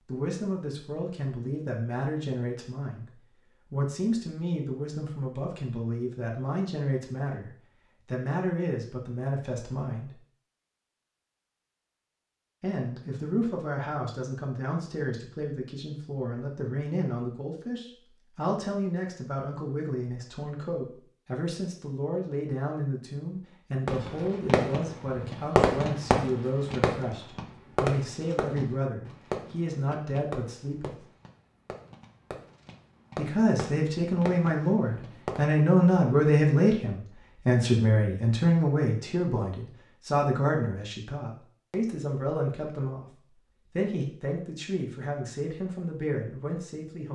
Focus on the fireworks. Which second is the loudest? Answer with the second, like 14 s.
26 s.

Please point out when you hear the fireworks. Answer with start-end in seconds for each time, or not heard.
23.9-35.4.